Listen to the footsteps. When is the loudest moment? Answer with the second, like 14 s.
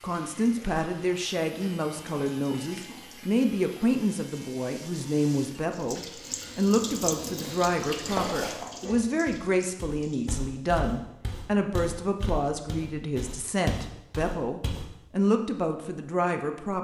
8 s.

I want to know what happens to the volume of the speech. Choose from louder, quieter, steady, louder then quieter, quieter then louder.
steady.